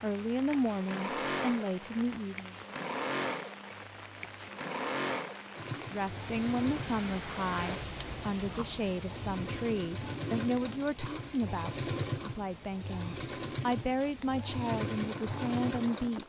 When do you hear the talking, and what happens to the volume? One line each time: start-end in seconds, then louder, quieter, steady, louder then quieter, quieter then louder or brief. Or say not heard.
0.0-2.5 brief
5.9-16.2 steady.